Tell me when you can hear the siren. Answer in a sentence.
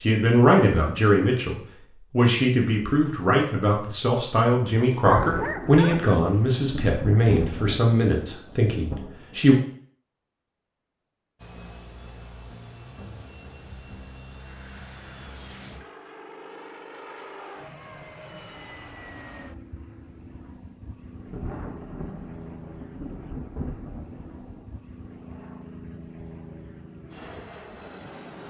You can't hear the siren here.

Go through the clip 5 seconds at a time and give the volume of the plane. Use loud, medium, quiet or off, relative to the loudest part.
off, off, loud, loud, loud, loud.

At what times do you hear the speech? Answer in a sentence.
The speech can be heard from 0.0 to 9.6 s.